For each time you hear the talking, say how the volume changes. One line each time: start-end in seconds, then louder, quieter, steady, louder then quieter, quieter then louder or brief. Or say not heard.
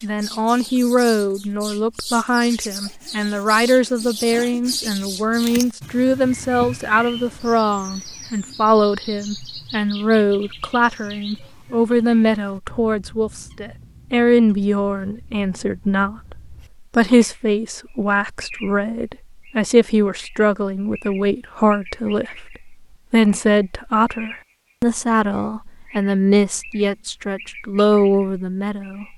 0.0-29.1 steady.